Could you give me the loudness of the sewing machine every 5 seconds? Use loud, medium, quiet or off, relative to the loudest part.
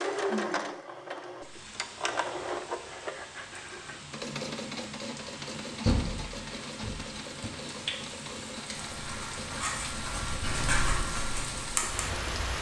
loud, medium, medium.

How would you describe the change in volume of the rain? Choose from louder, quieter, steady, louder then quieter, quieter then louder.
louder.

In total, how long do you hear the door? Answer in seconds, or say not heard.
2 s.